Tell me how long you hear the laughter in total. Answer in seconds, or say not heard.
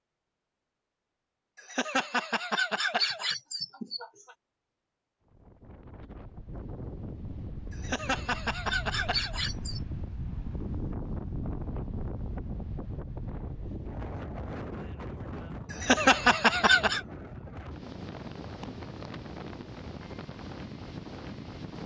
6 s.